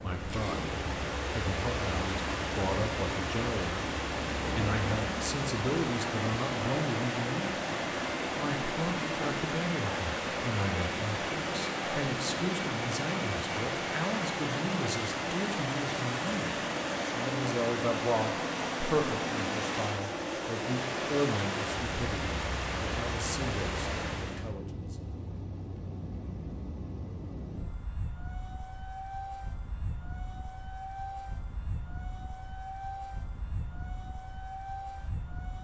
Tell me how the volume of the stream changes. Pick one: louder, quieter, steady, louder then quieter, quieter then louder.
steady.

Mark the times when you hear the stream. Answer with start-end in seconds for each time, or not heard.
0.0-24.6.